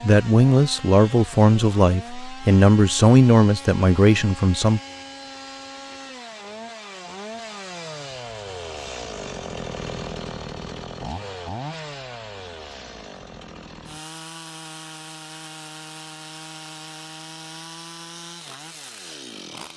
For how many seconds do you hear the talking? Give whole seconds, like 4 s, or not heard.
5 s.